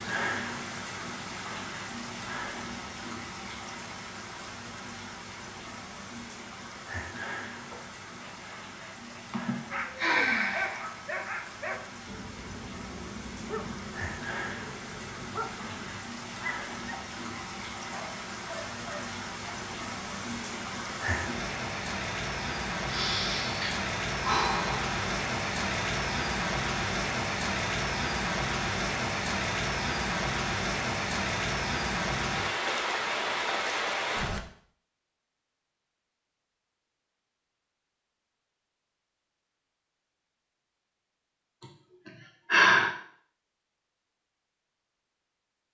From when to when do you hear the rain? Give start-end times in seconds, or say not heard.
0.0-34.4.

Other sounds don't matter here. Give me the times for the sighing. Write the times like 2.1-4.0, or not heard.
9.3-10.9, 22.9-25.0, 41.6-42.9.